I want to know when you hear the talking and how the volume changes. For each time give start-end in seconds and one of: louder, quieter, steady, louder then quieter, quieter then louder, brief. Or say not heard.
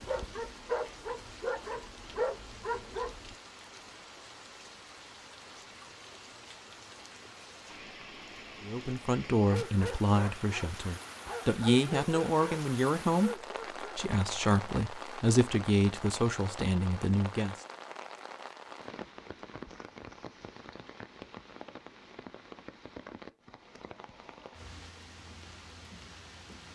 8.6-17.6 steady.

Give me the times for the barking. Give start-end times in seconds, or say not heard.
0.0-3.4, 9.5-14.0.